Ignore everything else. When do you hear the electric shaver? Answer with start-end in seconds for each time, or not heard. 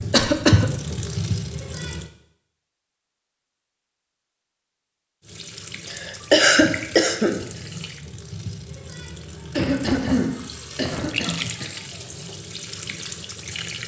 not heard.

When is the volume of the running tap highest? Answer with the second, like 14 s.
1 s.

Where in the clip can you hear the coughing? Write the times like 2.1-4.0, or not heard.
0.1-0.7, 5.8-7.4, 9.5-11.7.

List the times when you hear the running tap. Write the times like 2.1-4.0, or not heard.
0.0-2.1, 5.2-13.8.